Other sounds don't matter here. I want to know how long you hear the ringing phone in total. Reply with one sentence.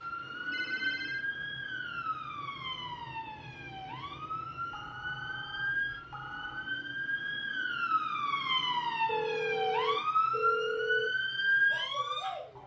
You can hear the ringing phone for 5 seconds altogether.